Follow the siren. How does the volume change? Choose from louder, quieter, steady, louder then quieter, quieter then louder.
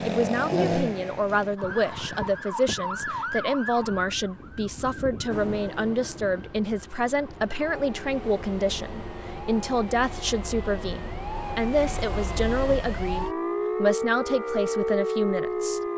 quieter then louder.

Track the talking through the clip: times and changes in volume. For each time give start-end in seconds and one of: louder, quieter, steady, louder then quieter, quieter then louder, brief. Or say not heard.
0.0-15.8 steady.